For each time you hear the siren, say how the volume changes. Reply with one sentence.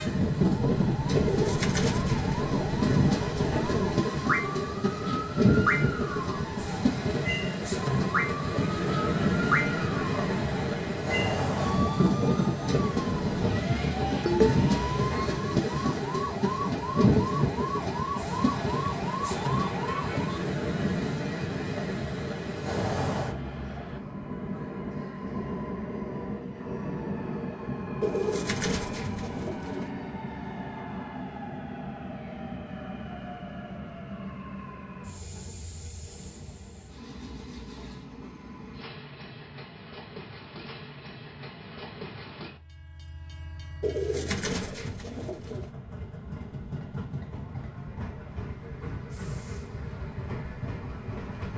You can hear the siren from 0.0 to 20.4 s, at a steady volume.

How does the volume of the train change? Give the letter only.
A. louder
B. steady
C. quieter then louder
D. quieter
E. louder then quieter
D.